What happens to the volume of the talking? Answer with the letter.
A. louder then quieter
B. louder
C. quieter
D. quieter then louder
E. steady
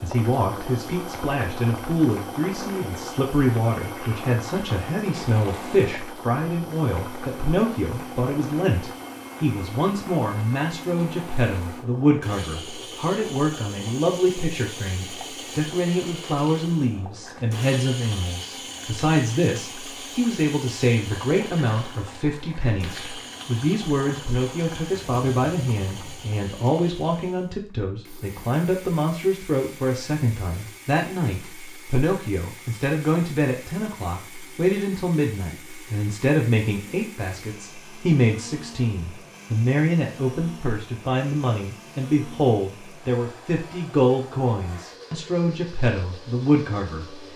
E.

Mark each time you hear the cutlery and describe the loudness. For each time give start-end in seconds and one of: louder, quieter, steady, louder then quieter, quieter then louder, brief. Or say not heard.
not heard.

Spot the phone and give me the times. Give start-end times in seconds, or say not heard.
not heard.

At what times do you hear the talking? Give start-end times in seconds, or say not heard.
0.0-47.3.